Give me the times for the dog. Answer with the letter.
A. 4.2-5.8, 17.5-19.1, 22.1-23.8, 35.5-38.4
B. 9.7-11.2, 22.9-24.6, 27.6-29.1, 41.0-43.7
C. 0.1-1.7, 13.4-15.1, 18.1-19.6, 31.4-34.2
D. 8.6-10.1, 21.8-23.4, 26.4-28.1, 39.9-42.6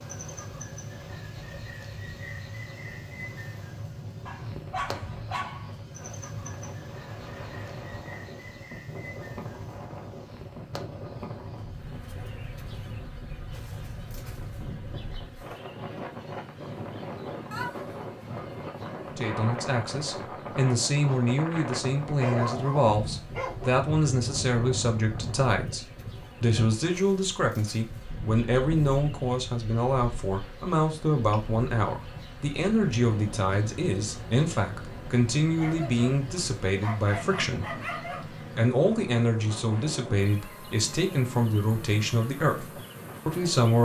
A.